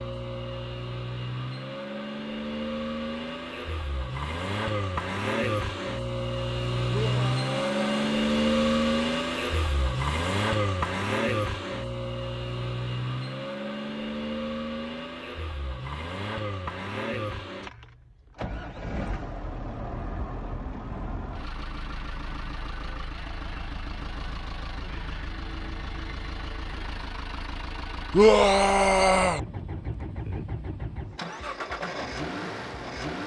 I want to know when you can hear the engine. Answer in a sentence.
The engine can be heard from 0.0 to 33.2 s.